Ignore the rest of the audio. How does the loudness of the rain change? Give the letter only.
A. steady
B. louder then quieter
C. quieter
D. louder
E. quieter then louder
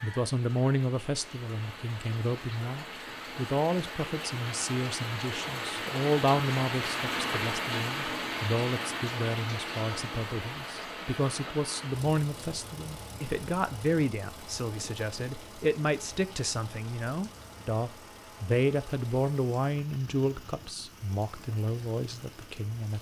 B.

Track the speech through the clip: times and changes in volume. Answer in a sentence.
You can hear the speech from 0.0 to 22.9 s, at a steady volume.